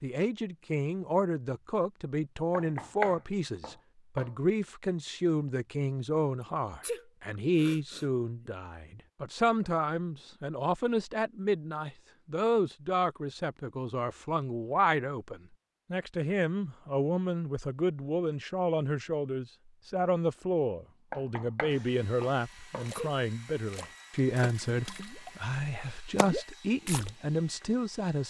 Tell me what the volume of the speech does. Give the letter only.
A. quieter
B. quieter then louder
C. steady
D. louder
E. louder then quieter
C.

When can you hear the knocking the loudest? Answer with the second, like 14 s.
3 s.